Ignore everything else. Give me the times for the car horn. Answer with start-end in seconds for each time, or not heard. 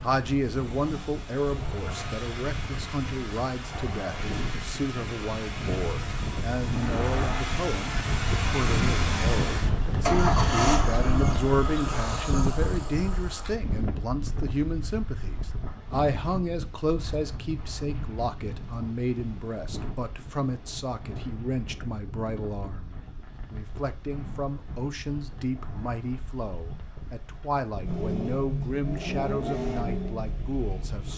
not heard.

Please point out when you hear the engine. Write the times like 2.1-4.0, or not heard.
0.0-13.5, 27.8-31.1.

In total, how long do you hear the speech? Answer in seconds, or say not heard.
31 s.